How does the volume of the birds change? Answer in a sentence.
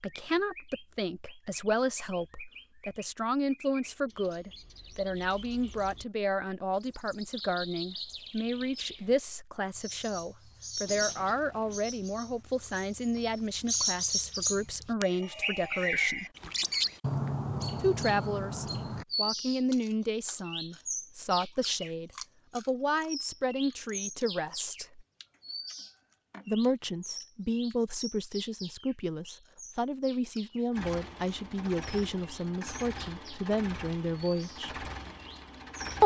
The loudness of the birds goes up, then down.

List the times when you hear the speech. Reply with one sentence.
The speech can be heard from 0.0 to 16.2 s, from 17.8 to 25.1 s and from 26.4 to 34.9 s.